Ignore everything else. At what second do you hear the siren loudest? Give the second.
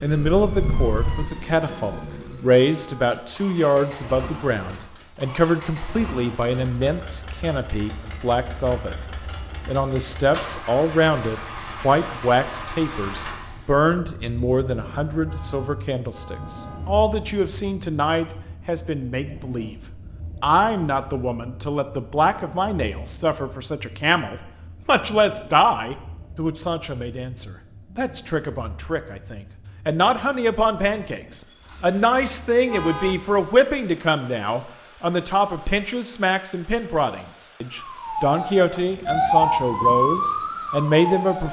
40 s.